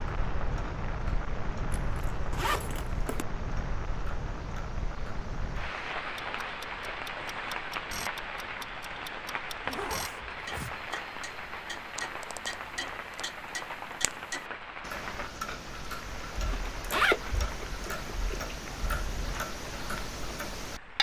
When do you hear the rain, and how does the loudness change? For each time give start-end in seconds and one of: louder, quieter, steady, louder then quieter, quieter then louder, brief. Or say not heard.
0.0-20.9 quieter.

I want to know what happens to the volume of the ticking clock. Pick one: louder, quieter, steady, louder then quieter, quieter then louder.
louder.